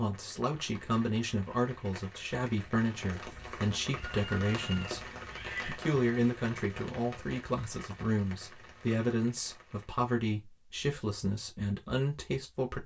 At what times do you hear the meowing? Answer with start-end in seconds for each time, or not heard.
3.1-5.8.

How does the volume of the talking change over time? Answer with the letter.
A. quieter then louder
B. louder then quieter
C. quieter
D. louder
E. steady
E.